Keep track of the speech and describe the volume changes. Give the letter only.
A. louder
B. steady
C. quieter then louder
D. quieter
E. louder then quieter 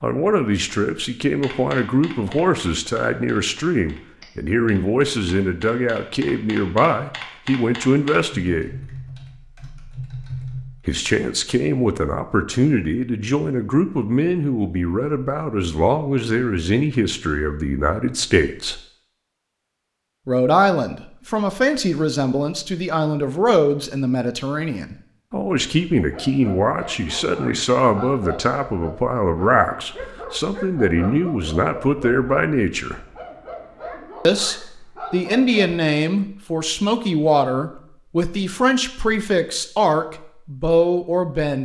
B.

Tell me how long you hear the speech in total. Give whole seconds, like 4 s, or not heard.
37 s.